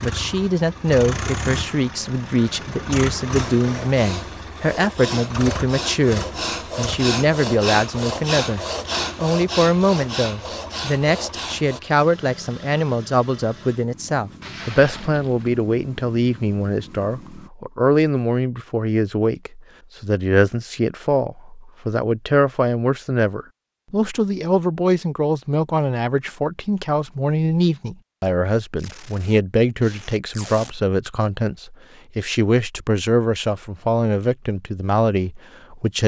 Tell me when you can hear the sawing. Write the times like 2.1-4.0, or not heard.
3.4-11.8.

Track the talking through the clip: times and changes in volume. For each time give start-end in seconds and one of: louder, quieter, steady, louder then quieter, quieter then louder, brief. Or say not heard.
0.0-36.0 steady.